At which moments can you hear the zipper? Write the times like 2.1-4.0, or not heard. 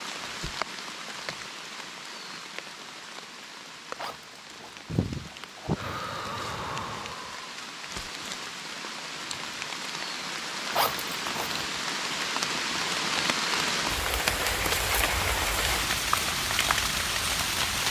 4.0-5.8, 10.7-11.7.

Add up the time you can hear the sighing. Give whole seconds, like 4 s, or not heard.
3 s.